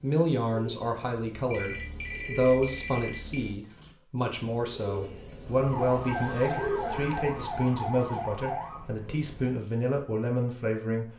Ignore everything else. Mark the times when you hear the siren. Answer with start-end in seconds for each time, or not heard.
5.5-9.6.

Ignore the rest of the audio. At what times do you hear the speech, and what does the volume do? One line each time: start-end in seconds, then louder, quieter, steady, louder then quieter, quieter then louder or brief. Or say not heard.
0.0-11.1 steady.